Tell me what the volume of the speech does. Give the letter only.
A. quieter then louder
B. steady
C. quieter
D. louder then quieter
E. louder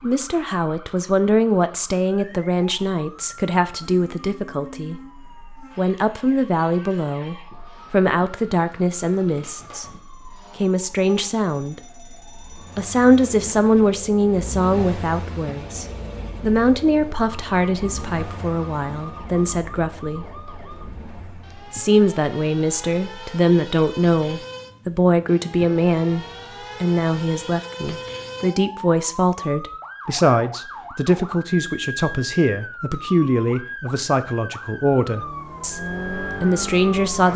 B.